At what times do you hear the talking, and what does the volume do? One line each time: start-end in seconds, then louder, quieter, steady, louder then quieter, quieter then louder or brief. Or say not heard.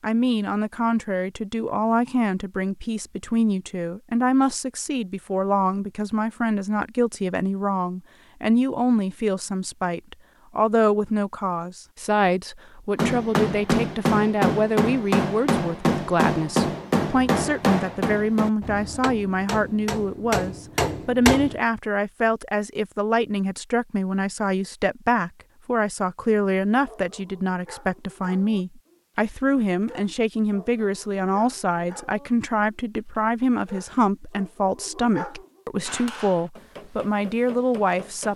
0.0-38.3 steady.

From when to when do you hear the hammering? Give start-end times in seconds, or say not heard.
12.9-21.6, 35.9-38.3.